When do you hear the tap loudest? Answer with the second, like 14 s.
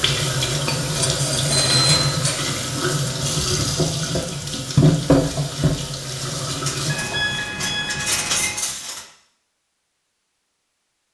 5 s.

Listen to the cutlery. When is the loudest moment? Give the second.
8 s.